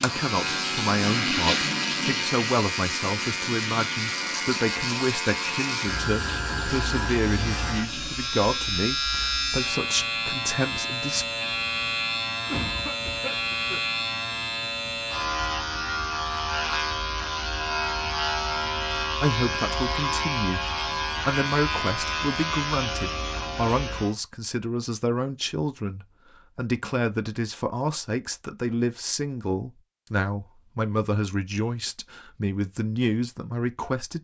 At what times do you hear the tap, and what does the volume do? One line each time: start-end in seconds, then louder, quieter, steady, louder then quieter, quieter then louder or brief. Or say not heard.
0.0-8.8 quieter.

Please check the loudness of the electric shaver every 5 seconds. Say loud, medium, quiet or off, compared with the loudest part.
loud, loud, loud, loud, loud, off, off.